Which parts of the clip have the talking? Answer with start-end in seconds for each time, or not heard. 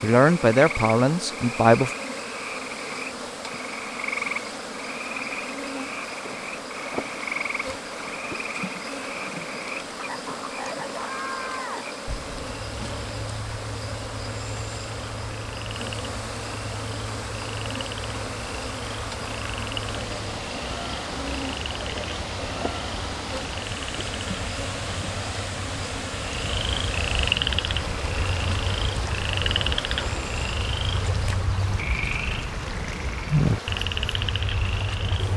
0.0-1.9.